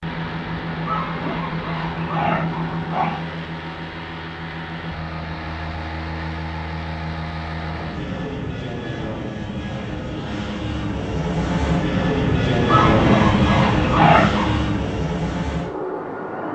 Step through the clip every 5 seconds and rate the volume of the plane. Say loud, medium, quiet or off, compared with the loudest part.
medium, medium, loud, medium.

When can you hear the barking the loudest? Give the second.
14 s.